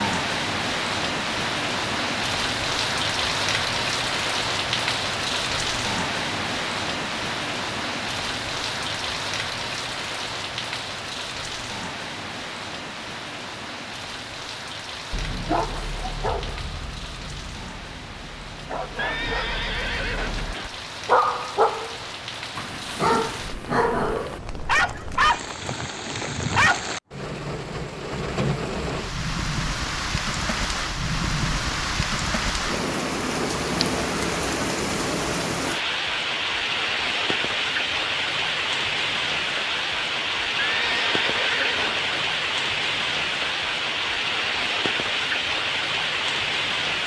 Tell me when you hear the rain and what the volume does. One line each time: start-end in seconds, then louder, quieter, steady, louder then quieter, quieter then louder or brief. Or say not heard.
0.0-47.0 quieter then louder.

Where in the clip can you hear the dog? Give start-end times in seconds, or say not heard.
15.1-26.9.